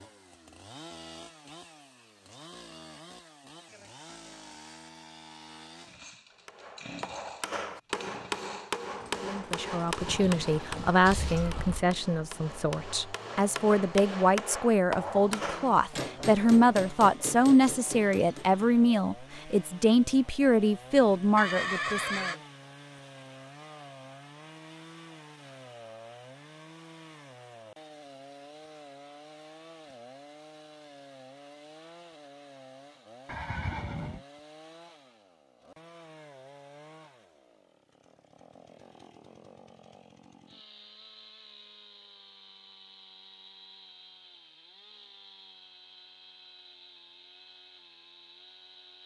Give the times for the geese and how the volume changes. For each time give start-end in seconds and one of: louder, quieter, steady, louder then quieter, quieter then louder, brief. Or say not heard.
not heard.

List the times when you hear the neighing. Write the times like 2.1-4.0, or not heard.
10.0-11.8, 21.4-22.4, 33.2-34.2.